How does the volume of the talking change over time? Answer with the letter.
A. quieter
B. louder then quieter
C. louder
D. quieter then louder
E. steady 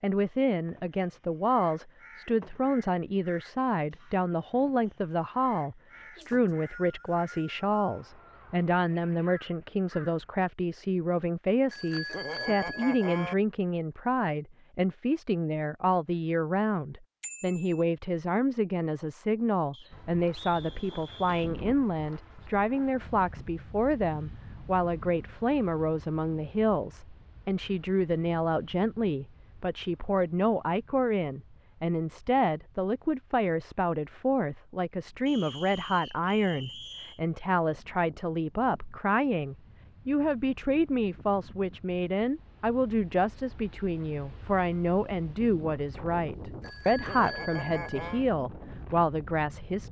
E.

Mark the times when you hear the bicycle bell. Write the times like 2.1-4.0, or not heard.
11.7-13.3, 17.2-17.9, 46.6-48.2.